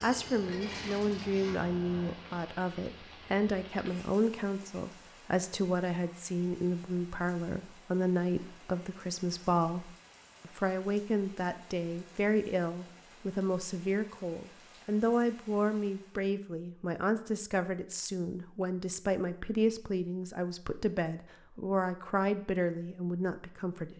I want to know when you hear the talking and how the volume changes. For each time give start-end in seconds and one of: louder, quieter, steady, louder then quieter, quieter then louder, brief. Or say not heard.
0.0-23.9 steady.